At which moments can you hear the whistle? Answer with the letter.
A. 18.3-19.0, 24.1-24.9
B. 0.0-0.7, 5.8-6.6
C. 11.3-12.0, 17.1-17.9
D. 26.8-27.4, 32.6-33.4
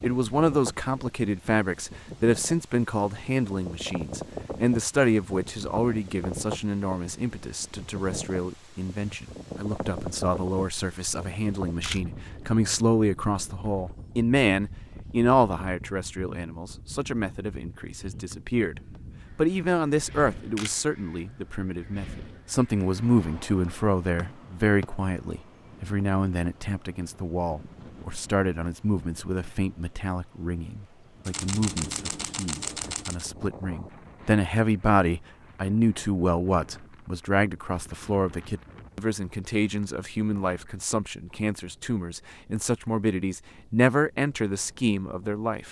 A.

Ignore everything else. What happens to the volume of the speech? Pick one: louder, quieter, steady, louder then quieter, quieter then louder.
steady.